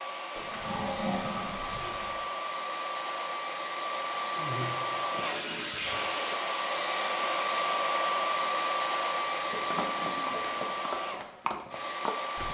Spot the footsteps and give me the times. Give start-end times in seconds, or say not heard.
9.3-12.4.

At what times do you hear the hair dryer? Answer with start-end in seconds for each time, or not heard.
0.0-12.4.